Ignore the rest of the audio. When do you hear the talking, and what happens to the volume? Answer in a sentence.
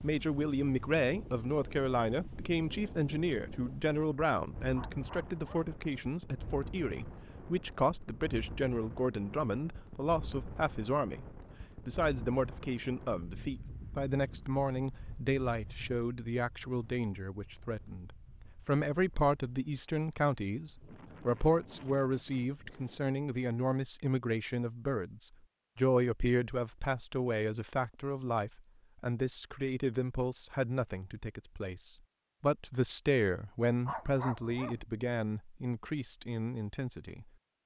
The talking can be heard from 0.0 to 37.2 s, at a steady volume.